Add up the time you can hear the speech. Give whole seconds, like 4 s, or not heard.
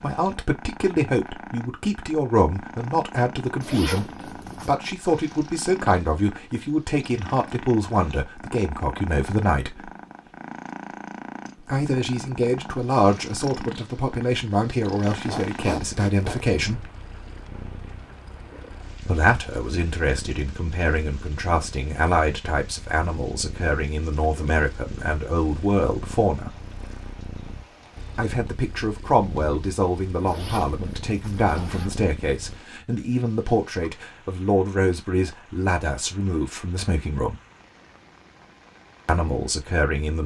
33 s.